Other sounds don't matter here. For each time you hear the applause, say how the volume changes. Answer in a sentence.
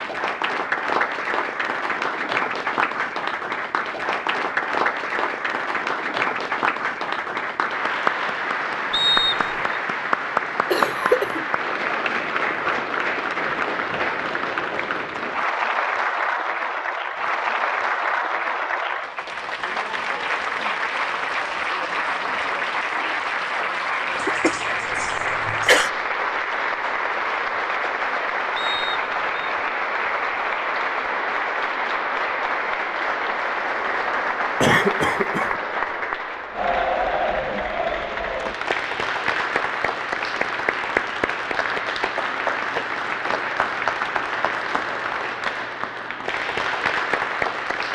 The applause can be heard from 0.0 to 47.8 s, at a steady volume.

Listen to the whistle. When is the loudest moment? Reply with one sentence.
The loudest moment of the whistle is at 9 seconds.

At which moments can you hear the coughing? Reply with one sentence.
You can hear the coughing from 10.7 to 11.4 s, from 24.2 to 25.9 s and from 34.6 to 35.5 s.